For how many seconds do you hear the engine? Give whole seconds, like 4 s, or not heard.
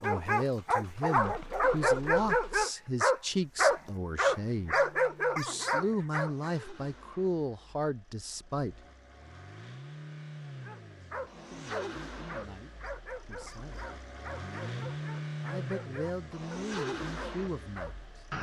18 s.